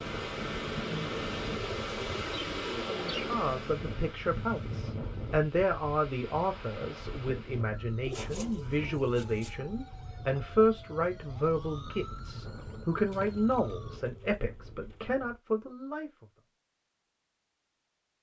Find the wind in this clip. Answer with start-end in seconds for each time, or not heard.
0.0-15.4.